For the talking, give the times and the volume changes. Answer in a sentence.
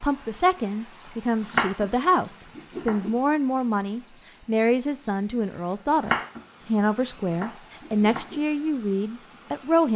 You can hear the talking from 0.0 to 9.9 s, at a steady volume.